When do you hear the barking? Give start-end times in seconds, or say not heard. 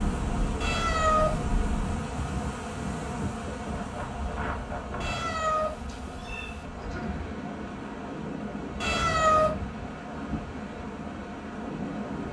not heard.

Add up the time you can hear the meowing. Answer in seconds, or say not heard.
3 s.